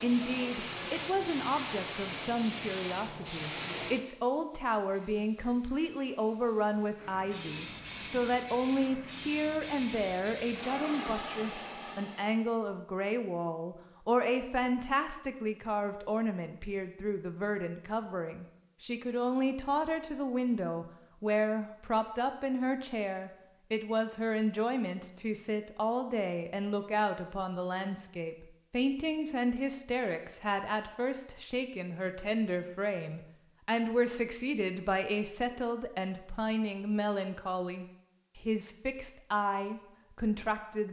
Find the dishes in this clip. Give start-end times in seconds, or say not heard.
not heard.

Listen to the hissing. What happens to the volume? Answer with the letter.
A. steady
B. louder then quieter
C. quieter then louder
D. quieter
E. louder
C.